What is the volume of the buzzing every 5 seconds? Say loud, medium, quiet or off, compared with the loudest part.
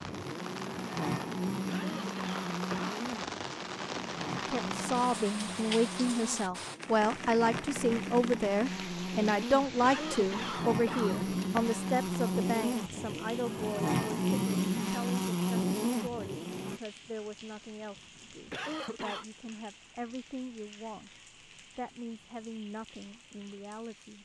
medium, medium, loud, loud, off.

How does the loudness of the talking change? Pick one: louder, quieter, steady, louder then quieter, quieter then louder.
quieter.